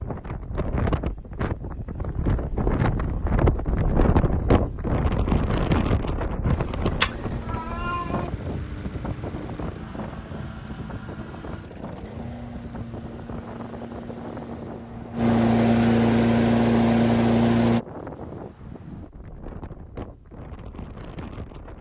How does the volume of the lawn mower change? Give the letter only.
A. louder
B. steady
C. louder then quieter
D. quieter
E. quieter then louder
A.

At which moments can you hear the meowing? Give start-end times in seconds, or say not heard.
6.5-8.3.